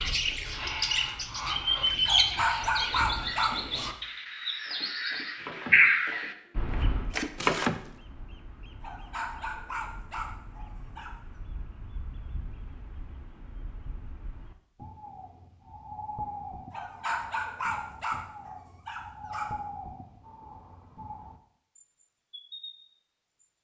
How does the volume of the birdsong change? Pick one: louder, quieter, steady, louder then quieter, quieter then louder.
quieter then louder.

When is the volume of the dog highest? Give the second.
3 s.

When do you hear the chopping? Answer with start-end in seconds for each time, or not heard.
4.7-7.8.